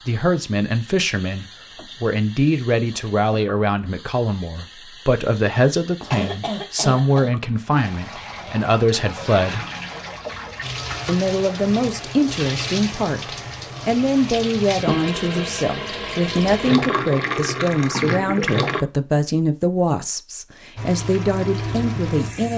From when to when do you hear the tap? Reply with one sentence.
You can hear the tap from 0.0 to 18.9 s and from 20.8 to 22.5 s.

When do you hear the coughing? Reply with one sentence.
You can hear the coughing from 6.1 to 7.3 s.